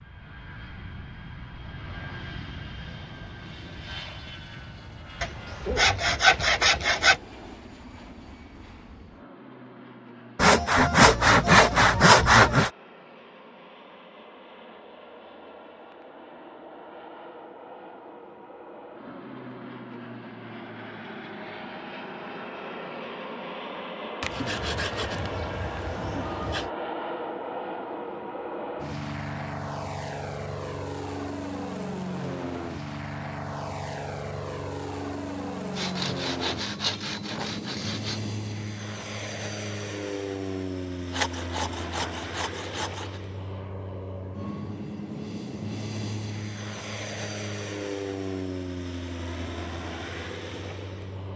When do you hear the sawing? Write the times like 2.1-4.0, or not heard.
5.2-7.2, 10.3-12.7, 24.2-26.7, 35.7-38.2, 41.1-43.2.